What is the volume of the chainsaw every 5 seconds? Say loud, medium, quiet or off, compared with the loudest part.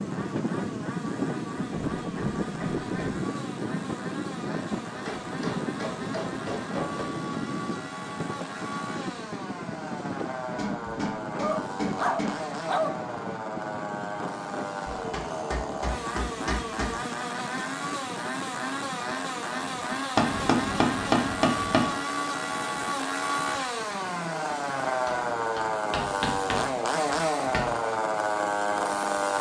quiet, medium, medium, medium, loud, loud.